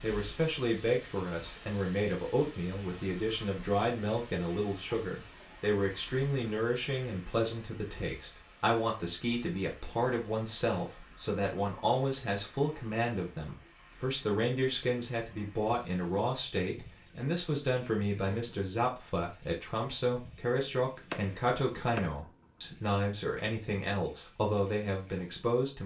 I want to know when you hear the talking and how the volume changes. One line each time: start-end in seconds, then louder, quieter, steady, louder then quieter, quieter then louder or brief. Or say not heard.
0.0-25.8 steady.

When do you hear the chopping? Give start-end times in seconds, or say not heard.
20.9-22.9.